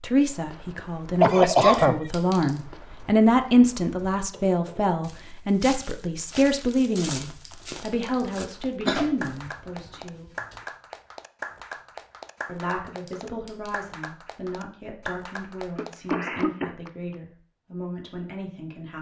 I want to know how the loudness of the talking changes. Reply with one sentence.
The loudness of the talking goes down.